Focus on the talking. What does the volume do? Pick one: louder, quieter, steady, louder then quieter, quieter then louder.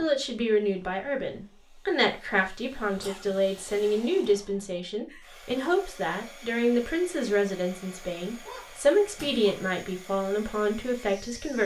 steady.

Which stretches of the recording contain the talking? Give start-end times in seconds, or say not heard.
0.0-11.6.